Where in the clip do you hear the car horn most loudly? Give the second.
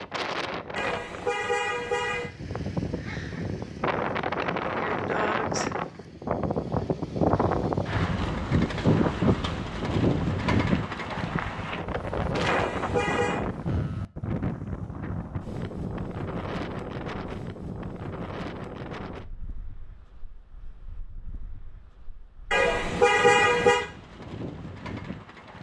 23 s.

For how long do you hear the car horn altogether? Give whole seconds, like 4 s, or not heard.
4 s.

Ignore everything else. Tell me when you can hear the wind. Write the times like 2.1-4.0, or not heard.
0.0-25.5.